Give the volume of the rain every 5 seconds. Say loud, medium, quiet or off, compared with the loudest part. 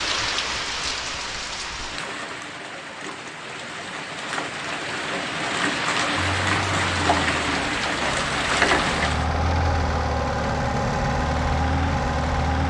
medium, loud, off.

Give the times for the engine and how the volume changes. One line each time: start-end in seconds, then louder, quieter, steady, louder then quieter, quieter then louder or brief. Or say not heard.
6.1-12.6 louder.